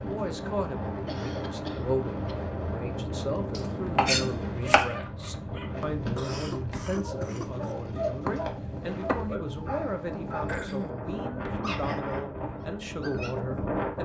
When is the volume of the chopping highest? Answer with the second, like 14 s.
4 s.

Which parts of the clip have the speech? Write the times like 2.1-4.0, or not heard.
0.0-14.0.